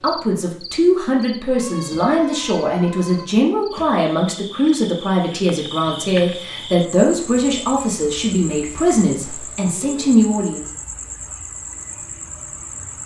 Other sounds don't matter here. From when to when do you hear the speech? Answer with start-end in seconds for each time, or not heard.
0.0-10.7.